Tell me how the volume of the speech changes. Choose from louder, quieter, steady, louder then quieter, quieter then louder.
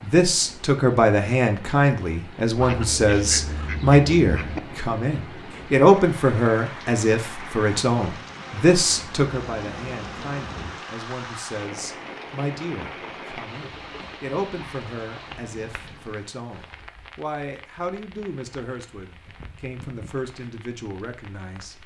quieter.